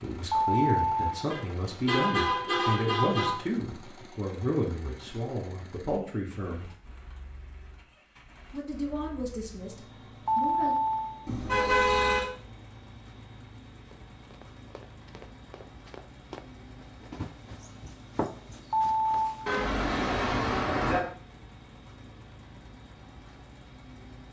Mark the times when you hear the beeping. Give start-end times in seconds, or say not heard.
0.3-1.2, 10.2-11.2, 18.7-19.4.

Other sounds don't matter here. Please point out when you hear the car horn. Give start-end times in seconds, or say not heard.
1.3-3.3, 11.2-12.2, 19.4-21.0.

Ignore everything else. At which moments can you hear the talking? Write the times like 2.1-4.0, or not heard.
0.0-6.7, 8.5-10.8.